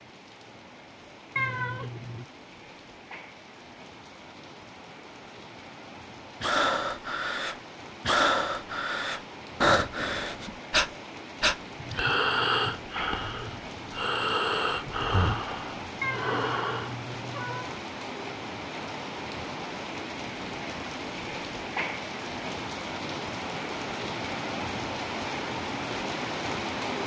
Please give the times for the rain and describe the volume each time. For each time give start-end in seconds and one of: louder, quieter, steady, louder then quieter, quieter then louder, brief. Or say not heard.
0.0-27.0 louder.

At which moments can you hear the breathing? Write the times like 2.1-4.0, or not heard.
6.4-16.9.